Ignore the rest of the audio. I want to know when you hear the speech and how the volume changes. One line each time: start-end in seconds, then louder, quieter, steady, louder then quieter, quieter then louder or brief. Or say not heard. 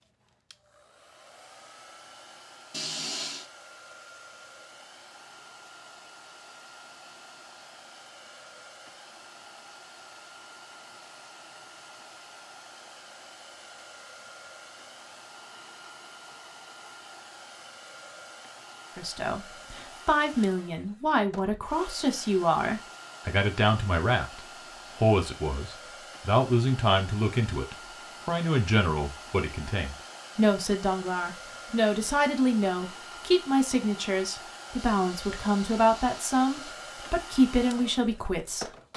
18.9-38.7 steady.